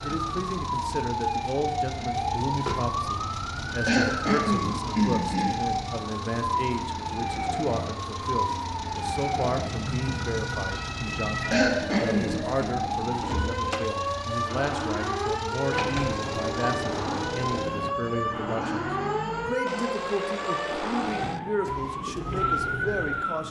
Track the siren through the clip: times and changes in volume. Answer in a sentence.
The siren can be heard from 0.0 to 23.4 s, at a steady volume.